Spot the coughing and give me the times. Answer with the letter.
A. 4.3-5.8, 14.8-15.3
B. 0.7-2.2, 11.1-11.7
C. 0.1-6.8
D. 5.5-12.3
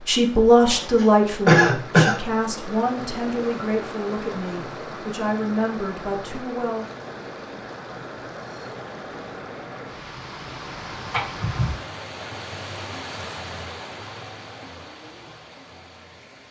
B.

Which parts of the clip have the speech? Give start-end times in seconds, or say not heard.
0.1-6.8.